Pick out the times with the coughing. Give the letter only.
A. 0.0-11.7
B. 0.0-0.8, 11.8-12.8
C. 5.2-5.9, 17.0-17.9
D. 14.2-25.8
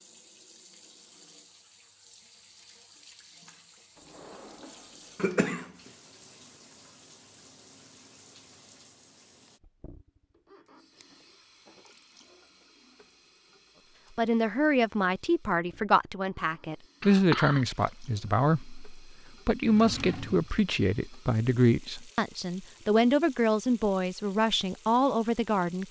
C.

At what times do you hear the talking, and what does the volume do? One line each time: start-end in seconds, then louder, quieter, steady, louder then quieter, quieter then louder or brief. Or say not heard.
14.2-25.8 steady.